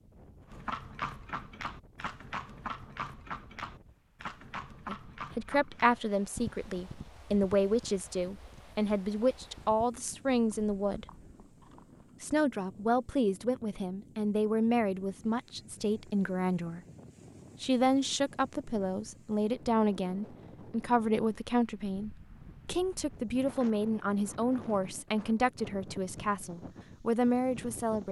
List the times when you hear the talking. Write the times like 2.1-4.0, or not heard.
4.8-11.1, 12.2-16.8, 17.6-28.0.